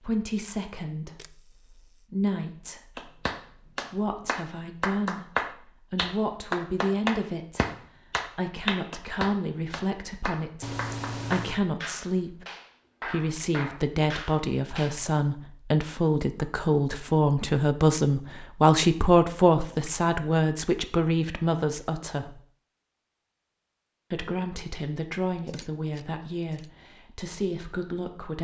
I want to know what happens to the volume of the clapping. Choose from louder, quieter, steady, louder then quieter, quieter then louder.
quieter.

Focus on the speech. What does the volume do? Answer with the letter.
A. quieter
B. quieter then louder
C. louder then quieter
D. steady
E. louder
C.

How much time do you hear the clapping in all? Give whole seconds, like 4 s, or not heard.
12 s.